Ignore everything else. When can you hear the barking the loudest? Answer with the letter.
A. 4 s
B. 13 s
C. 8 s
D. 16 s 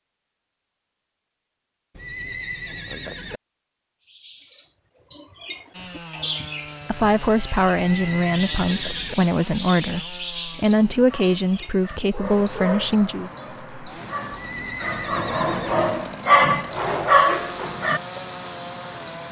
D.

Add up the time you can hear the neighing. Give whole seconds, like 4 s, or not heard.
4 s.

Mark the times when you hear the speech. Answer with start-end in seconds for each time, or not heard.
6.8-13.3.